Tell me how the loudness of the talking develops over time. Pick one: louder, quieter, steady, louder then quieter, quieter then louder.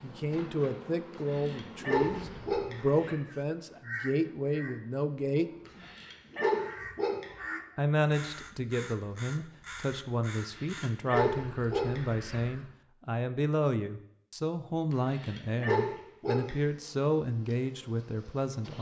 steady.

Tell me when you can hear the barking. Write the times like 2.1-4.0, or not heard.
1.1-3.1, 5.7-7.3, 10.3-12.4, 14.9-16.6.